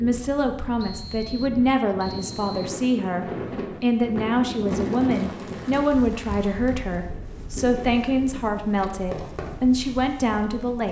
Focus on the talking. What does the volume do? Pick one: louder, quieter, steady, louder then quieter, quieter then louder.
steady.